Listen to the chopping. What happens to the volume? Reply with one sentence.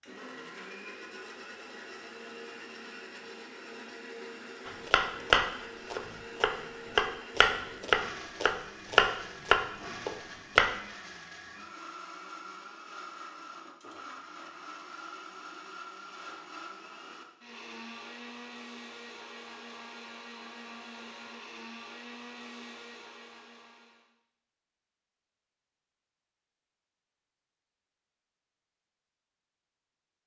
The volume of the chopping stays about the same.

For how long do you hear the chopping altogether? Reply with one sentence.
The chopping can be heard for 6 seconds in total.